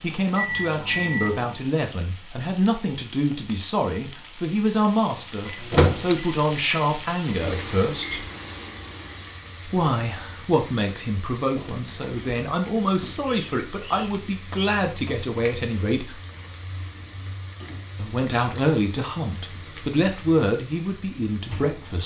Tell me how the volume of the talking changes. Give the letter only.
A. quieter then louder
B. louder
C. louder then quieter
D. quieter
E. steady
E.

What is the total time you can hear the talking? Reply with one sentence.
The talking can be heard for 19 seconds in total.